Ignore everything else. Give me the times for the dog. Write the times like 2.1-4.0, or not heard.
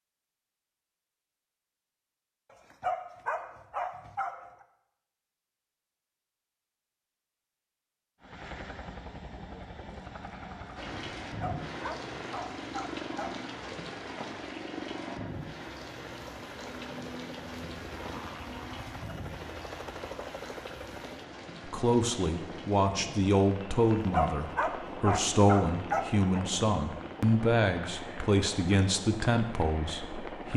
2.5-4.7, 11.2-13.4, 23.8-26.4.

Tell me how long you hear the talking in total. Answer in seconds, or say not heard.
9 s.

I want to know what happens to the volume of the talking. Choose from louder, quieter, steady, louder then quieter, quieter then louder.
steady.